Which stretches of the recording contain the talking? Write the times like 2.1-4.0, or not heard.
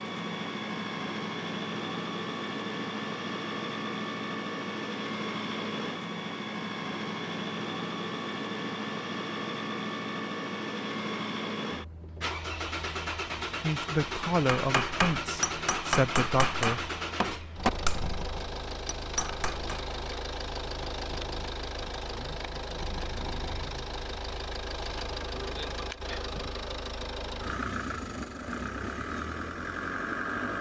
13.6-16.9.